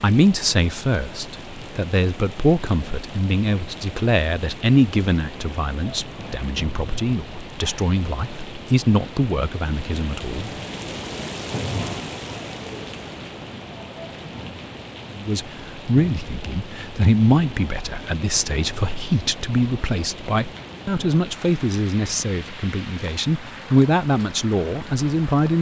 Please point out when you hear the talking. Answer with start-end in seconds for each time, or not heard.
0.0-10.5, 15.2-25.5.